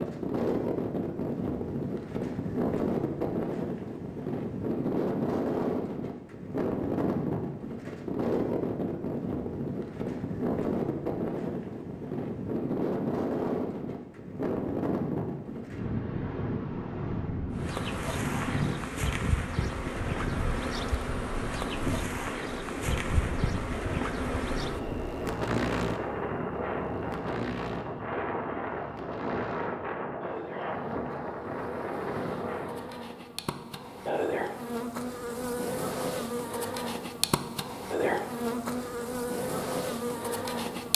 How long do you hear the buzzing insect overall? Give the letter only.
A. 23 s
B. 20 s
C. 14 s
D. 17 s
A.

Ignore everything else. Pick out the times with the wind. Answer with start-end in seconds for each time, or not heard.
0.0-33.0.